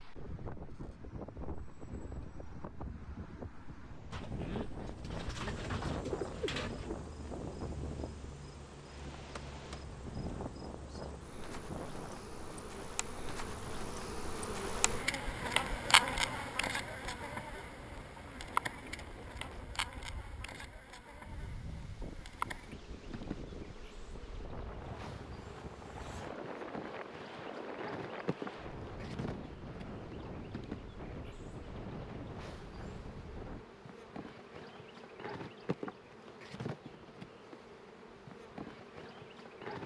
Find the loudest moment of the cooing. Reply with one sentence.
The volume of the cooing peaks at 6 seconds.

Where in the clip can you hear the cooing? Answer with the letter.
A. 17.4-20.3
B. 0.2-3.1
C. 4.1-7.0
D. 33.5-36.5
C.